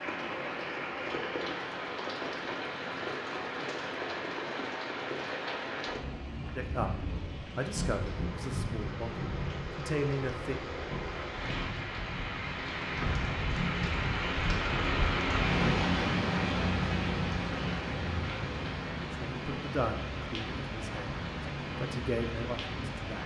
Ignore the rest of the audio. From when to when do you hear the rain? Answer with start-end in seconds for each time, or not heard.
0.0-23.2.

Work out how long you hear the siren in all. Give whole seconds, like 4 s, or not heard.
not heard.